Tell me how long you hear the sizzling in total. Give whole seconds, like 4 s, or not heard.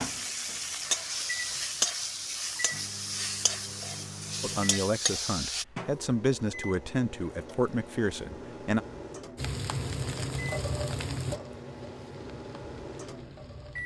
10 s.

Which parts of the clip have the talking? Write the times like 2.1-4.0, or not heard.
4.4-8.8.